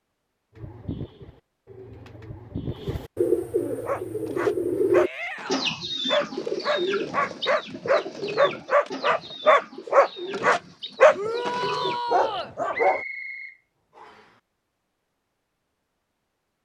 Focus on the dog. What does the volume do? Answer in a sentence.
The loudness of the dog goes up.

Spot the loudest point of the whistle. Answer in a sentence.
The loudest moment of the whistle is at 13 seconds.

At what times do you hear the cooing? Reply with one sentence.
The cooing can be heard from 0.6 to 12.0 s.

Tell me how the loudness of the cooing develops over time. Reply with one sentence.
The loudness of the cooing goes up, then down.